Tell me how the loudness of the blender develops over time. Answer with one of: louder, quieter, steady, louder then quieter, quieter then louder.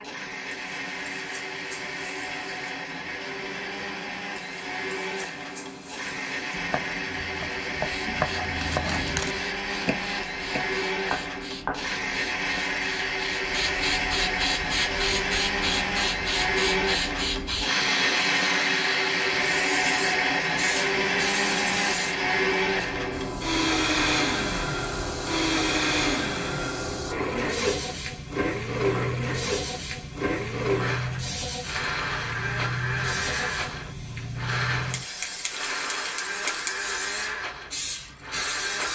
louder then quieter.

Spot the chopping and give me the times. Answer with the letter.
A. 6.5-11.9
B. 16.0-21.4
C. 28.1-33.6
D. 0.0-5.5
A.